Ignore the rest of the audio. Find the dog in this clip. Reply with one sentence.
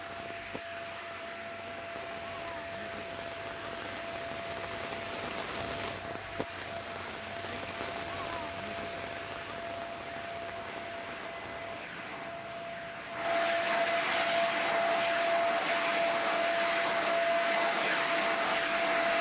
You can't hear the dog here.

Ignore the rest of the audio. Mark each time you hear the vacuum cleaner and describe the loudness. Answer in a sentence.
You can hear the vacuum cleaner from 0.0 to 19.1 s, getting louder.